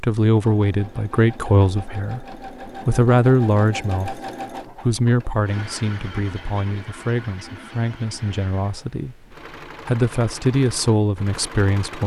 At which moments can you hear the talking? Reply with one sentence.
The talking can be heard from 0.0 to 12.0 s.